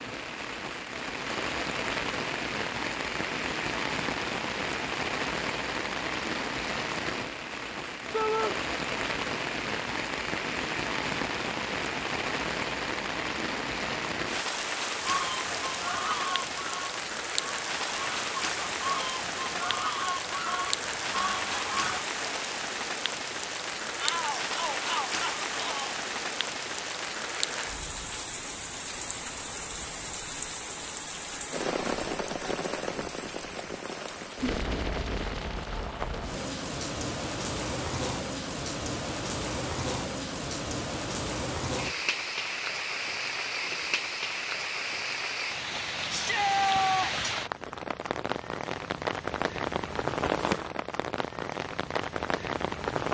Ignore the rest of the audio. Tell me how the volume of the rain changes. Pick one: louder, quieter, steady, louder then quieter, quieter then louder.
steady.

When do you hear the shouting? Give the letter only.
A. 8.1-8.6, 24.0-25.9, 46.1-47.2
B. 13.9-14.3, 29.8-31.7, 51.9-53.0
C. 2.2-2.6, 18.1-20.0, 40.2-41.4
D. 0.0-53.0
A.